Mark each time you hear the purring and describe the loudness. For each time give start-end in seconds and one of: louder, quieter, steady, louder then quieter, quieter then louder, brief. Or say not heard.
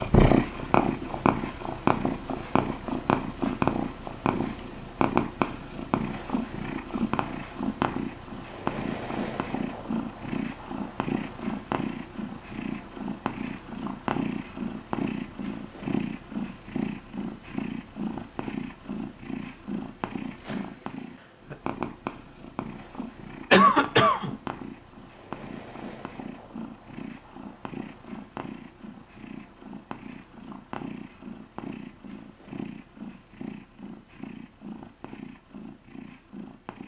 0.0-36.8 quieter.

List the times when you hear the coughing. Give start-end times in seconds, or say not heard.
23.5-24.3.